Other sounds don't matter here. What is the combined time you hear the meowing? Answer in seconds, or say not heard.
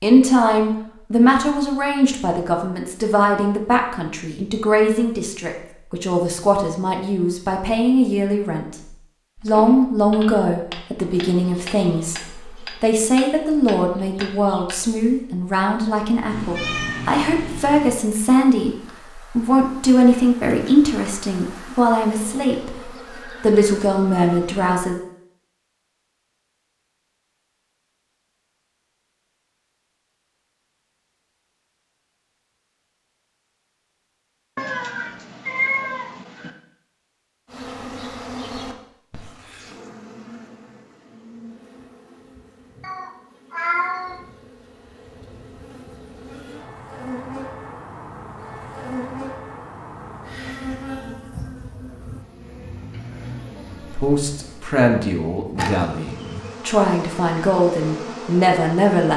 5 s.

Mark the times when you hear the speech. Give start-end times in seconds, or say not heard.
0.0-8.8, 9.4-24.9, 53.8-59.1.